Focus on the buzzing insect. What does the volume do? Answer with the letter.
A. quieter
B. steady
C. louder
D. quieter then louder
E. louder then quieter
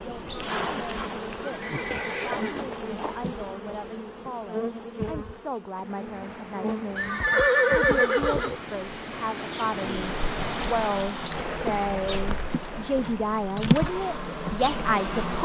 D.